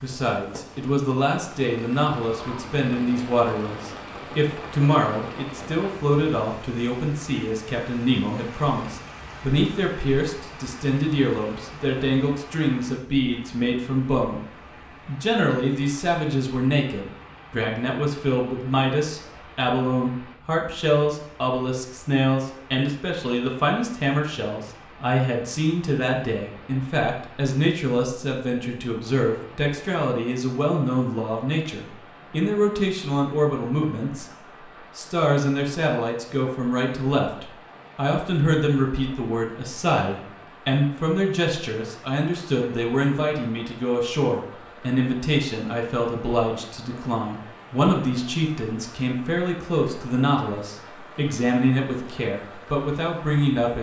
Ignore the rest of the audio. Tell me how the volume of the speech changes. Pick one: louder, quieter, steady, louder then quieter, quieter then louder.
steady.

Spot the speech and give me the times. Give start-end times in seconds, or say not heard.
0.0-53.7.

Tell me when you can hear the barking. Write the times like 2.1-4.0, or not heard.
not heard.